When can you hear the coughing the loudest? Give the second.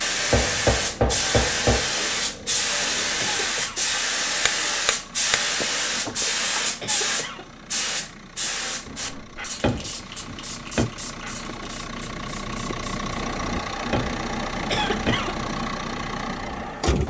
15 s.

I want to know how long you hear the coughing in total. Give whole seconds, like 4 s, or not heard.
2 s.